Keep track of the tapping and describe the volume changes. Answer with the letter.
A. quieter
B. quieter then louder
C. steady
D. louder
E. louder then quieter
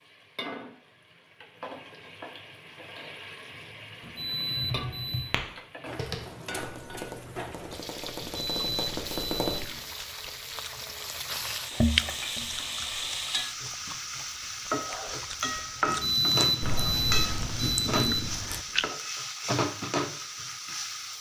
B.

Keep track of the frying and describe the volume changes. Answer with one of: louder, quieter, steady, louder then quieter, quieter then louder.
louder.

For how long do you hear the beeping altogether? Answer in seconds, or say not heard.
6 s.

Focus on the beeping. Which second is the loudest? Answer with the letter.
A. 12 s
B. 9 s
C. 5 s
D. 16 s
D.